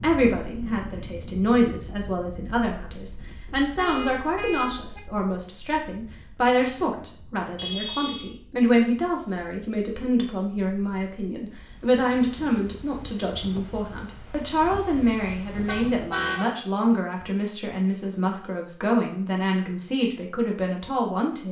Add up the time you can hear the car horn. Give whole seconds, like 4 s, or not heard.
3 s.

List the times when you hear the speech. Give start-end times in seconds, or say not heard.
0.0-21.4.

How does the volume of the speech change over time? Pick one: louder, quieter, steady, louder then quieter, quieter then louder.
steady.